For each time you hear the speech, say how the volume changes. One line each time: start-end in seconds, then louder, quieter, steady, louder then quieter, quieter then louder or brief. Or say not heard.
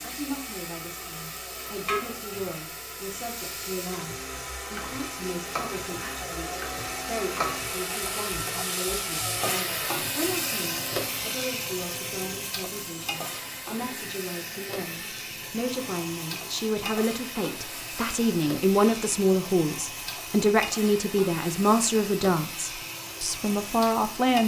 0.0-24.4 louder.